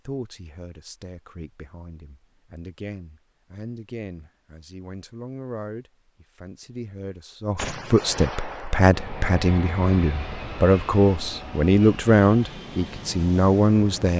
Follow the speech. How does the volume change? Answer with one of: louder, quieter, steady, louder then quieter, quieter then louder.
louder.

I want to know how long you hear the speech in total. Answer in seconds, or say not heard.
14 s.